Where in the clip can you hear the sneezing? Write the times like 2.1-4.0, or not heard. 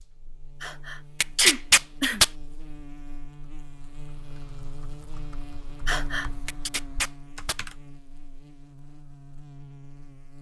0.6-2.2, 5.8-6.7.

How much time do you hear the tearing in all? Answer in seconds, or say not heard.
2 s.